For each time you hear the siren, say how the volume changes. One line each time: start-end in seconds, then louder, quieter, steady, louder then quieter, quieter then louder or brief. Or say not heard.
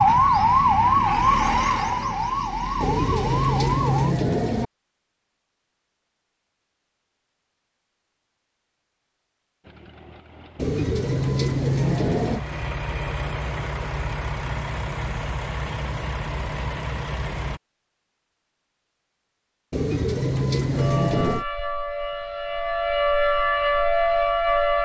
0.0-4.2 quieter
20.7-24.8 louder.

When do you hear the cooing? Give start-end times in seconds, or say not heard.
2.8-4.7, 10.6-12.4, 19.7-21.4.